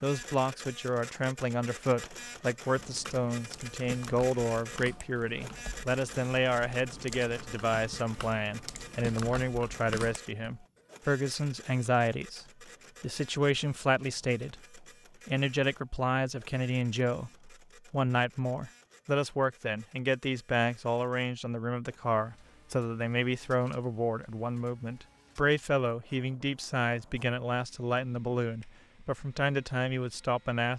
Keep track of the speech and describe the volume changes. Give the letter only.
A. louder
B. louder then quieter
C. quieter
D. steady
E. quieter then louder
D.